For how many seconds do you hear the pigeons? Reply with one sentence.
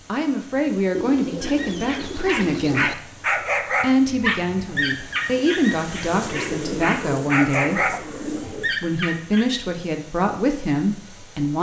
You can hear the pigeons for 5 seconds altogether.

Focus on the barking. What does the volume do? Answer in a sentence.
The volume of the barking stays about the same.